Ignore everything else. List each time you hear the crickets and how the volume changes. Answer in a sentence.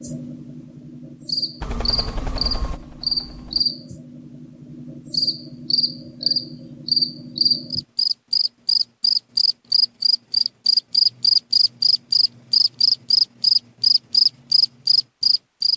The crickets can be heard from 0.0 to 15.7 s, getting louder.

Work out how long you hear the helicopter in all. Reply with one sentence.
The helicopter can be heard for 2 seconds in total.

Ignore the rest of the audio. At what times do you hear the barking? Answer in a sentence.
You can't hear the barking here.